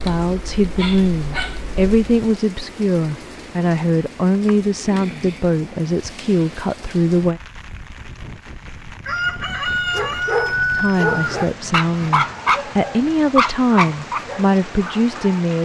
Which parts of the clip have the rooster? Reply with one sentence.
You can hear the rooster from 9.1 to 11.6 s.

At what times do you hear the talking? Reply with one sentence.
You can hear the talking from 0.0 to 7.4 s and from 10.7 to 15.6 s.